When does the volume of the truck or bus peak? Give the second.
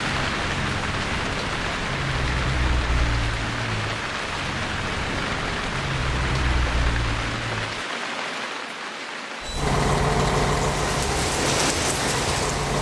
10 s.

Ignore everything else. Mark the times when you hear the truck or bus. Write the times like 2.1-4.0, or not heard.
0.0-7.8, 9.4-12.7.